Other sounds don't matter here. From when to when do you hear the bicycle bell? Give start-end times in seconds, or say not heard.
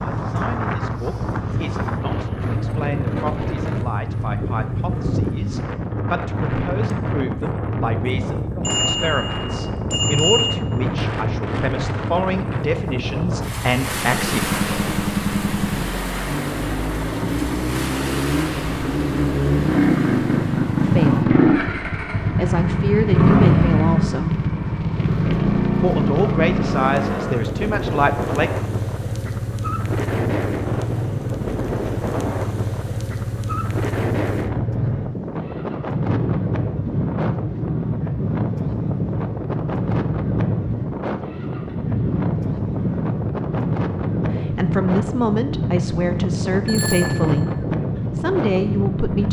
8.6-10.6, 46.6-47.5.